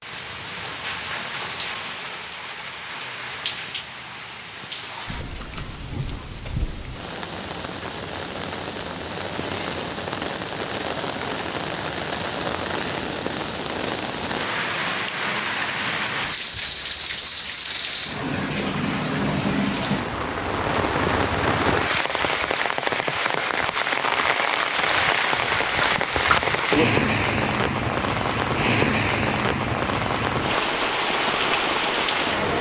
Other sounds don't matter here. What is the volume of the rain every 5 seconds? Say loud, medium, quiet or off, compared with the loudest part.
medium, medium, medium, loud, loud, loud, loud.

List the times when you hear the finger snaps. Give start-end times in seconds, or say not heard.
25.5-26.4.